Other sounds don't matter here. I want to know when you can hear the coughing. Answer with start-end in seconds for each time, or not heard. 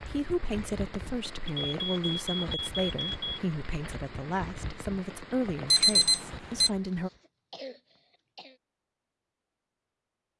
6.7-8.6.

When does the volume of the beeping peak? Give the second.
6 s.